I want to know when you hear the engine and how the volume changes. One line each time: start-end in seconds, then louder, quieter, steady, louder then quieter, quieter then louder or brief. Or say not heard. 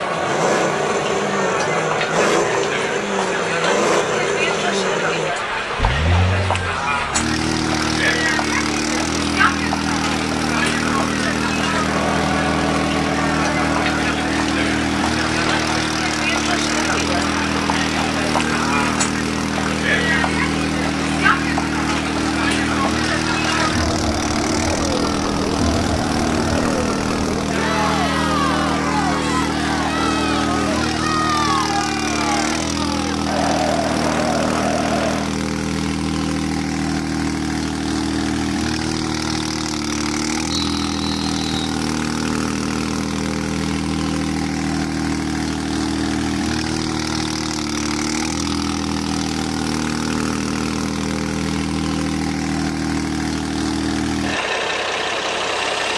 0.0-55.9 steady.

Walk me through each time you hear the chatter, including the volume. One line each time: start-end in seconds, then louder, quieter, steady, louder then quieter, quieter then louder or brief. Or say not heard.
0.0-35.4 steady.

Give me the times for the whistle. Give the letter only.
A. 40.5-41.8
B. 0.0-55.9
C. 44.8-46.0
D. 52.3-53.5
A.